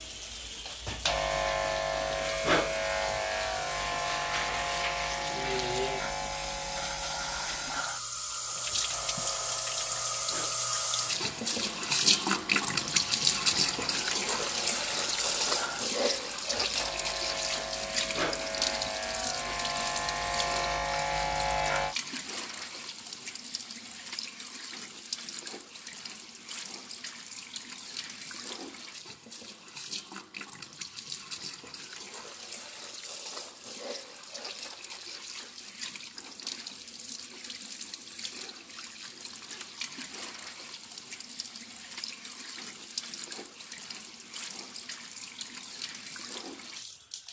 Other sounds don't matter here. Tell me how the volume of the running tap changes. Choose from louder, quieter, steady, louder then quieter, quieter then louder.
louder then quieter.